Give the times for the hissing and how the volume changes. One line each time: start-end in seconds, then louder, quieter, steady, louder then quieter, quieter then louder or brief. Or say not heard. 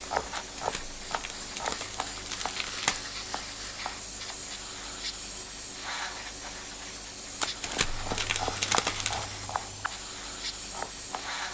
0.0-11.4 steady.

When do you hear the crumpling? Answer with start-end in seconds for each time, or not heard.
0.3-3.0, 7.4-9.3.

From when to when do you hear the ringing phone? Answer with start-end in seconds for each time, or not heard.
not heard.